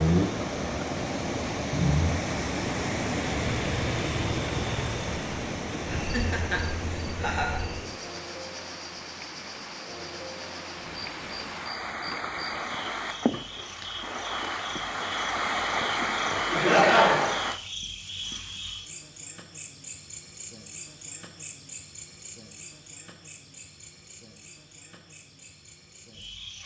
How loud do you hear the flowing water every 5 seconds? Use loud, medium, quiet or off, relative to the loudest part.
loud, medium, medium, loud, off, off.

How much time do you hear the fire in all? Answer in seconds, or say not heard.
not heard.